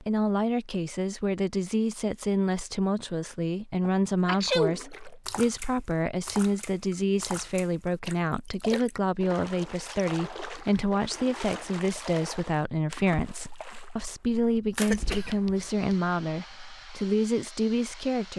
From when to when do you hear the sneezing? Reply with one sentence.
The sneezing can be heard from 3.8 to 4.8 s and from 14.8 to 15.9 s.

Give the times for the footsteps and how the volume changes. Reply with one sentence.
You can't hear the footsteps here.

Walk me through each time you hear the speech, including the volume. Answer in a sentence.
The speech can be heard from 0.0 to 18.3 s, at a steady volume.